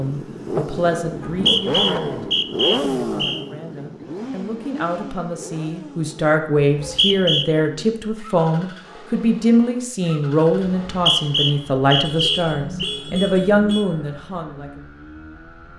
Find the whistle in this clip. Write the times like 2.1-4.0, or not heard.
1.1-3.4, 6.5-7.5, 10.7-12.9.